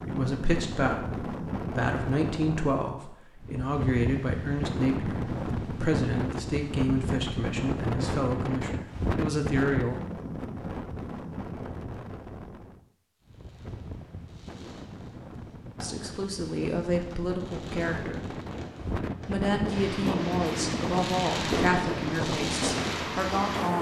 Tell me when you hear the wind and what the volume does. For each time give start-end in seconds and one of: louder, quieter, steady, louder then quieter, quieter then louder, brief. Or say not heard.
0.0-23.7 quieter then louder.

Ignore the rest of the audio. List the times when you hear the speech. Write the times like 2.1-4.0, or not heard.
0.1-10.0, 15.8-18.2, 19.2-23.7.